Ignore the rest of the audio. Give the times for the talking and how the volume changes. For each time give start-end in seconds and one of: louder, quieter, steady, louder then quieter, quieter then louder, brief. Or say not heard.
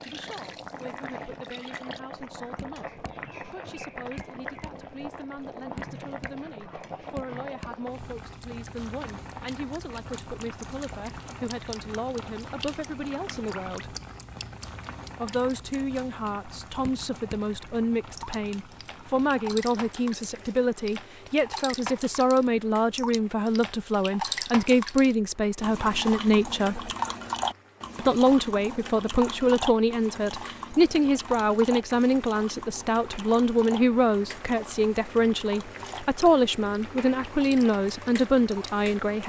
0.0-13.9 louder
15.2-26.9 louder
27.9-39.2 steady.